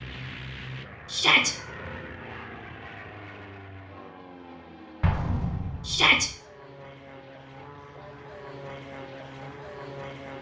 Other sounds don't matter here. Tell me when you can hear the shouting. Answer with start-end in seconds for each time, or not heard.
1.1-1.6, 5.8-6.3.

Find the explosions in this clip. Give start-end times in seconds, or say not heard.
5.0-6.3.